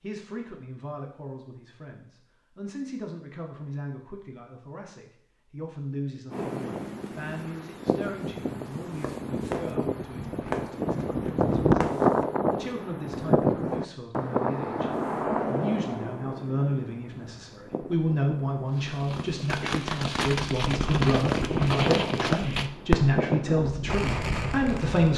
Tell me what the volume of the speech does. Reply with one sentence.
The loudness of the speech goes up.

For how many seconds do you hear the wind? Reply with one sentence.
You can hear the wind for 19 seconds altogether.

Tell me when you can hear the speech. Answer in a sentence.
You can hear the speech from 0.0 to 25.1 s.